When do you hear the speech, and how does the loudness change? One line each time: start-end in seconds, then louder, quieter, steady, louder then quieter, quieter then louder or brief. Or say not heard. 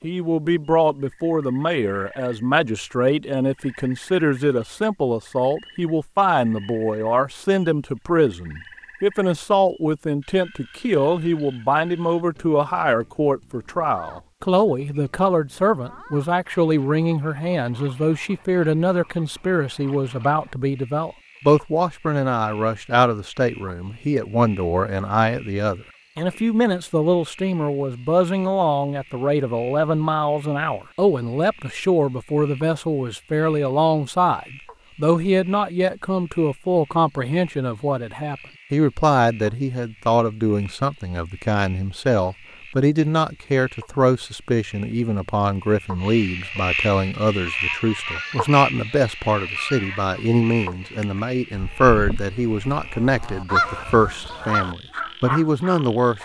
0.0-56.1 steady.